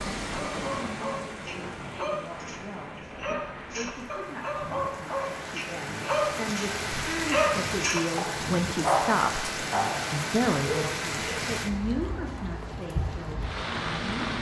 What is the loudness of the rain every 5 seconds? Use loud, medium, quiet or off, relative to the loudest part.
medium, loud, loud.